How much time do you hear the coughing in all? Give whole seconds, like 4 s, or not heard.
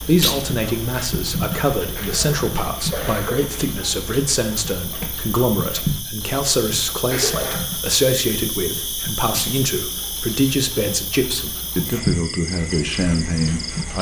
2 s.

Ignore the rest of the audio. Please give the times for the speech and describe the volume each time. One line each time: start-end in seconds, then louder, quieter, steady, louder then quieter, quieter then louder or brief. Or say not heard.
0.0-13.9 steady.